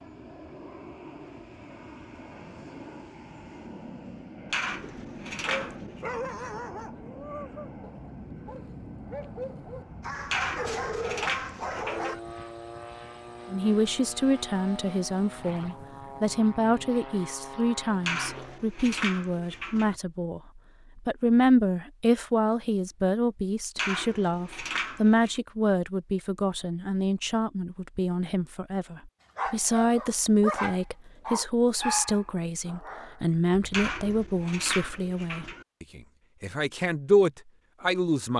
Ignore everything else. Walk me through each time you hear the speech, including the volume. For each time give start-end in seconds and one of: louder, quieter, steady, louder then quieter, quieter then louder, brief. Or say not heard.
13.5-38.3 steady.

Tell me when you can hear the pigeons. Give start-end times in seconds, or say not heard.
4.5-6.0, 10.2-12.2, 18.0-19.9, 23.8-25.4, 33.7-35.6.